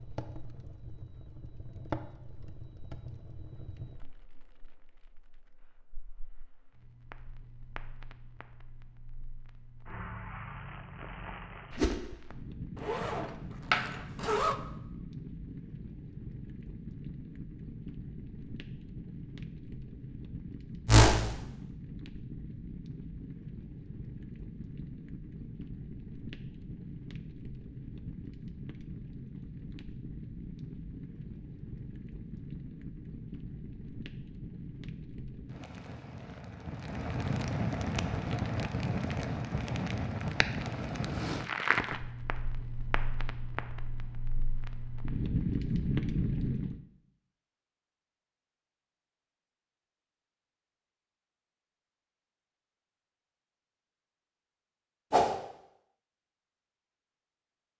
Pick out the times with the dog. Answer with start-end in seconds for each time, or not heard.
not heard.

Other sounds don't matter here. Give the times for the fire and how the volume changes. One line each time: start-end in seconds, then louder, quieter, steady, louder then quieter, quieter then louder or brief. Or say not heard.
0.0-46.8 louder.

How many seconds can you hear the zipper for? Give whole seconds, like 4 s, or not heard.
2 s.